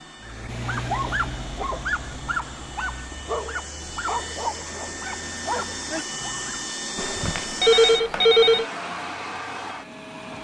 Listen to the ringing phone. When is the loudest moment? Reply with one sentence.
The volume of the ringing phone peaks at 8 seconds.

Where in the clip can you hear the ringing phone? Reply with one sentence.
You can hear the ringing phone from 7.0 to 8.7 s.